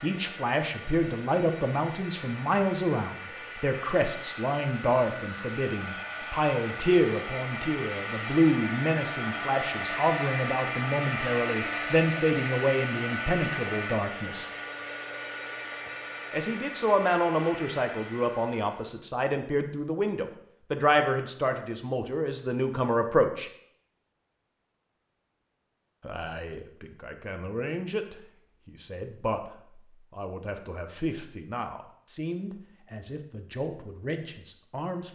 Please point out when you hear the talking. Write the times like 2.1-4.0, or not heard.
0.0-14.5, 16.3-23.5, 26.0-35.1.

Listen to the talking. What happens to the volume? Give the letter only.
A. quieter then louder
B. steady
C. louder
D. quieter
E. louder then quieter
D.